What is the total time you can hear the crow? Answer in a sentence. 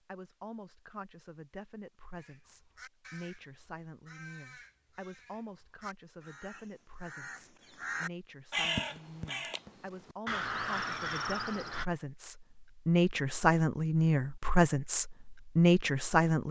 The crow can be heard for 10 seconds in total.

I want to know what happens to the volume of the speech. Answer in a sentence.
The loudness of the speech goes up.